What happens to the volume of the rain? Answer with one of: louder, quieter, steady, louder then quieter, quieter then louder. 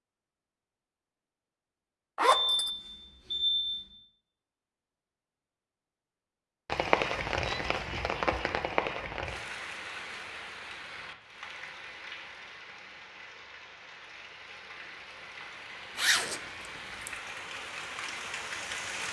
quieter then louder.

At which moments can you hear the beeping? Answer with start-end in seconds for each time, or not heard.
2.2-3.9.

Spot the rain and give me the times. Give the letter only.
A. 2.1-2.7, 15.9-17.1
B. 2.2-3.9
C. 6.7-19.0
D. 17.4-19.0
C.